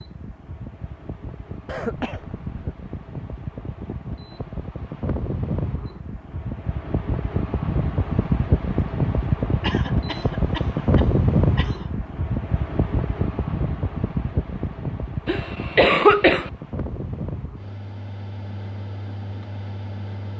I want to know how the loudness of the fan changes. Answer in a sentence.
The loudness of the fan goes up, then down.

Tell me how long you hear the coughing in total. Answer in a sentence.
You can hear the coughing for 5 seconds altogether.